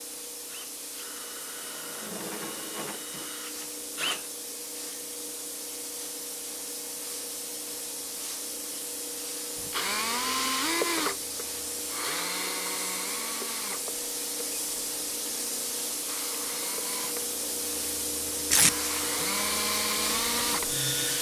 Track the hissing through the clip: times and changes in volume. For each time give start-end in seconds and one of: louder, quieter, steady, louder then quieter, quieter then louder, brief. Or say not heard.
0.0-21.1 louder.